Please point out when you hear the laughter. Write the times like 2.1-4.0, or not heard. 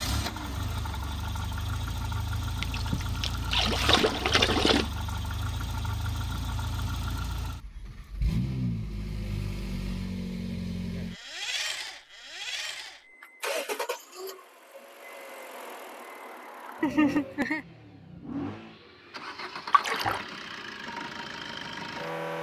16.8-17.6.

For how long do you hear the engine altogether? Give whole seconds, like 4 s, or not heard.
22 s.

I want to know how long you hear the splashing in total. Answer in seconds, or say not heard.
3 s.